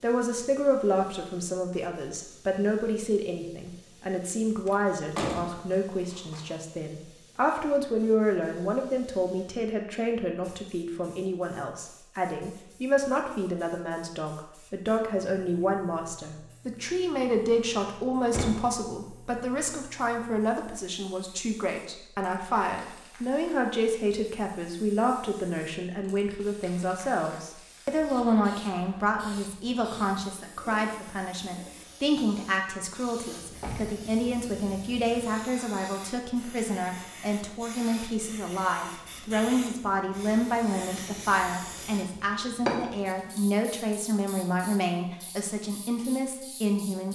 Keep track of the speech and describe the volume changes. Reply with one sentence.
The loudness of the speech stays about the same.